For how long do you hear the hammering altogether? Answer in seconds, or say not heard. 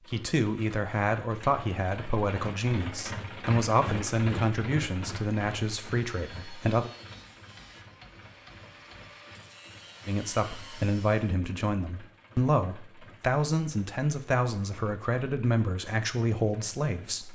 2 s.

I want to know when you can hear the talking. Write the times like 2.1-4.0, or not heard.
0.1-6.9, 10.1-17.2.